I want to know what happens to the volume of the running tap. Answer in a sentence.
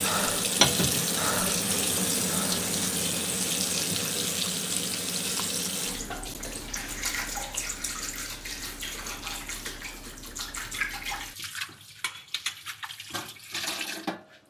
The volume of the running tap goes down.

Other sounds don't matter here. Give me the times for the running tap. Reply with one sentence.
You can hear the running tap from 0.0 to 14.4 s.